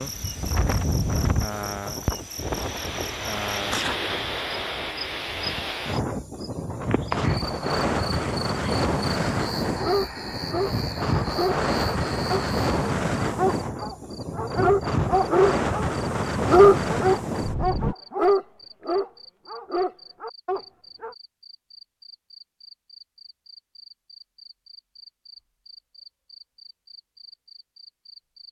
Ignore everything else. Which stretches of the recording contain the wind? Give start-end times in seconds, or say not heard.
0.0-17.9.